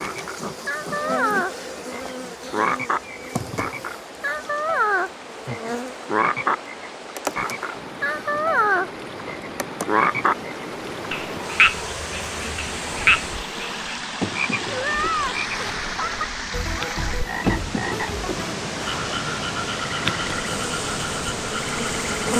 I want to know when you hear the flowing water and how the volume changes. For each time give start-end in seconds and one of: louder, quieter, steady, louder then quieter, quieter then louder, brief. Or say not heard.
0.1-22.3 louder.